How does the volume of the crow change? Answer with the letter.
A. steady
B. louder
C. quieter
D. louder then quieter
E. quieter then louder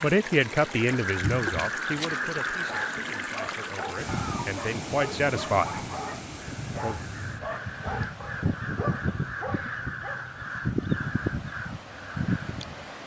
E.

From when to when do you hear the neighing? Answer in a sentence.
The neighing can't be heard in this clip.